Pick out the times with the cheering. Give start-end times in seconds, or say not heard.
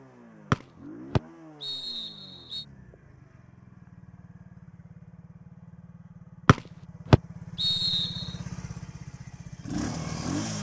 not heard.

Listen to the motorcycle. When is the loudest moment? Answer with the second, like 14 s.
10 s.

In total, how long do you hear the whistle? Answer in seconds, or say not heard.
4 s.